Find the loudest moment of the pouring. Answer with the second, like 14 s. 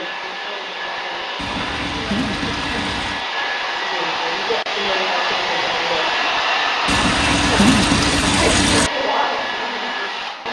8 s.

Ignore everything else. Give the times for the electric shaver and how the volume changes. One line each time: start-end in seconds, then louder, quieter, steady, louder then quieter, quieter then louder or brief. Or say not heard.
not heard.